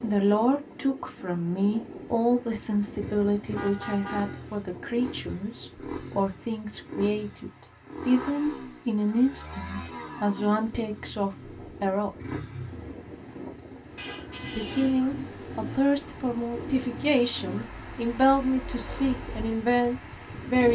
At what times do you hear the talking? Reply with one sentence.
You can hear the talking from 0.0 to 12.1 s and from 14.5 to 20.7 s.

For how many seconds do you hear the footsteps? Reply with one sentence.
The footsteps can't be heard in this clip.